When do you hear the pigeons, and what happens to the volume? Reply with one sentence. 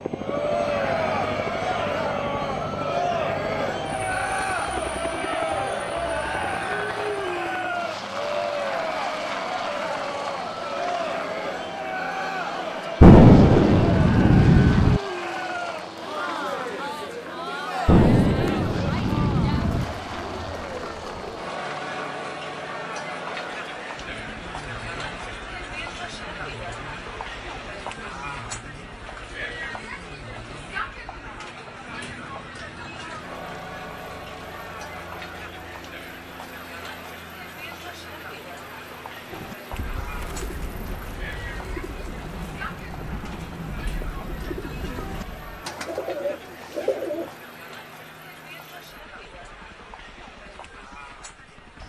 You can hear the pigeons from 39.3 to 47.5 s, getting louder.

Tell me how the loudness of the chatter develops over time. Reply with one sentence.
The loudness of the chatter goes down.